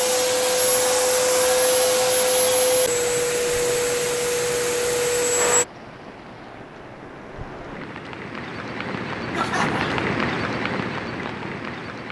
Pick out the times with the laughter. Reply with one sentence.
You can hear the laughter from 9.3 to 10.1 s.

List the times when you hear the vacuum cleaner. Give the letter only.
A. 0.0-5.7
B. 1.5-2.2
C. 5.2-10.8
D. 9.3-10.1
A.